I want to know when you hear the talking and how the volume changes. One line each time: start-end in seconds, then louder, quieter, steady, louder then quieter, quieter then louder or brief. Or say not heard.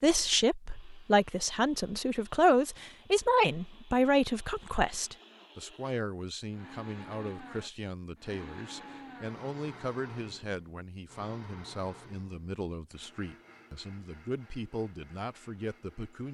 0.0-16.3 quieter.